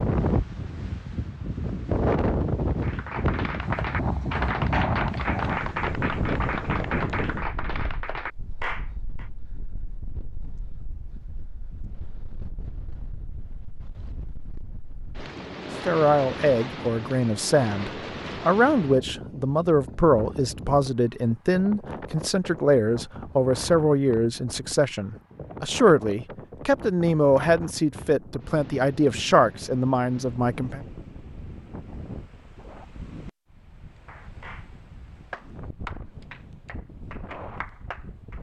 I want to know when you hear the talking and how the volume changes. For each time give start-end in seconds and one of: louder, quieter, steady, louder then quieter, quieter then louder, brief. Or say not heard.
15.8-30.8 steady.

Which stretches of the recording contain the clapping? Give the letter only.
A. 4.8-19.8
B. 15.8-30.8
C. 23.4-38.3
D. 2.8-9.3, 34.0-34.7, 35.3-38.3
D.